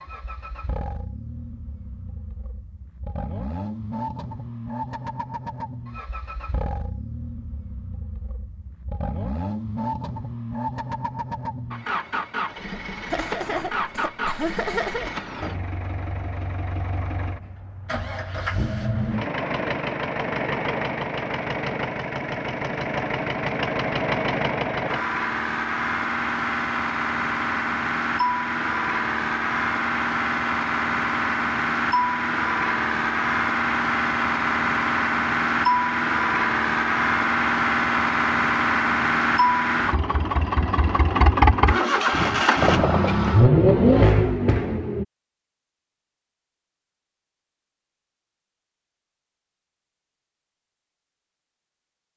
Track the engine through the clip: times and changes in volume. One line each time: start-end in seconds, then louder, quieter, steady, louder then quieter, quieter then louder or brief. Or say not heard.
0.0-45.0 louder.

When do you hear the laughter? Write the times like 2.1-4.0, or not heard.
13.1-15.1.